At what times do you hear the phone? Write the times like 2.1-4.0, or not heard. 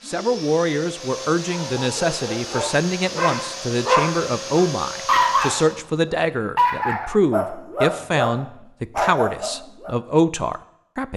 not heard.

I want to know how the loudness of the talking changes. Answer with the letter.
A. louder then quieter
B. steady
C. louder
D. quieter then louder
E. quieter
B.